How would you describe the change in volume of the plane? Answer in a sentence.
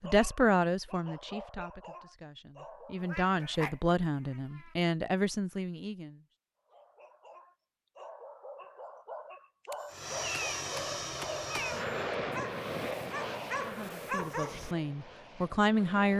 The loudness of the plane goes down.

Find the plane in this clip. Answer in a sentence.
The plane can be heard from 9.9 to 16.1 s.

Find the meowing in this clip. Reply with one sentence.
The meowing can be heard from 3.0 to 4.8 s and from 9.7 to 12.1 s.